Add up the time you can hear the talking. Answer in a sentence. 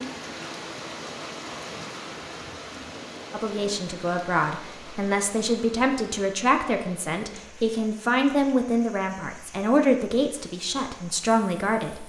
The talking can be heard for 9 seconds in total.